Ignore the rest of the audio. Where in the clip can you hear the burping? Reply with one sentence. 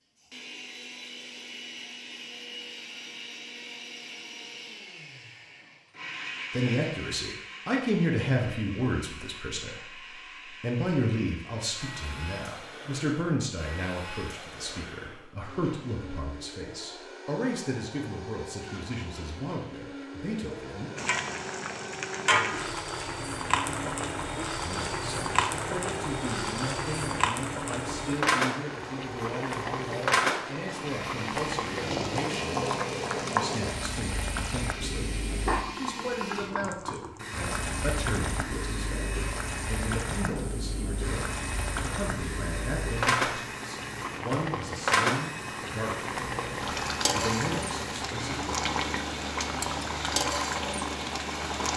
You can't hear the burping here.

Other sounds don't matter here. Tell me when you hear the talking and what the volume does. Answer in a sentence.
You can hear the talking from 6.5 to 20.9 s, getting quieter; and from 24.6 to 48.6 s, at a steady volume.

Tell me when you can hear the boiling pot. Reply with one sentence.
The boiling pot can be heard from 20.9 to 51.7 s.